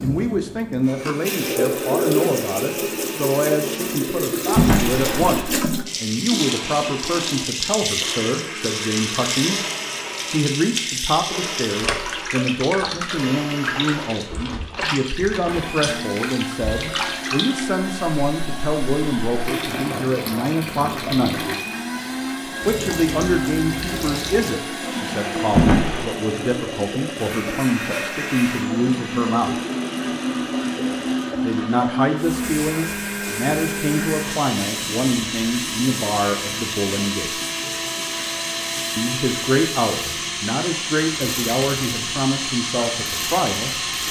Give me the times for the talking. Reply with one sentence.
You can hear the talking from 0.0 to 9.6 s, from 10.3 to 21.4 s, from 22.6 to 29.6 s, from 31.4 to 37.4 s and from 39.0 to 44.0 s.